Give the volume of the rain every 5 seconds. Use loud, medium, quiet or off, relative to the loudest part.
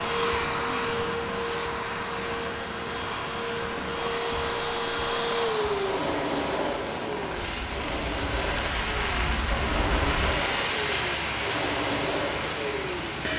medium, loud, loud.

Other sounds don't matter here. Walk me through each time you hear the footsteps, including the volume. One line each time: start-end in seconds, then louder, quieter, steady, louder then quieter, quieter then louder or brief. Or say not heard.
not heard.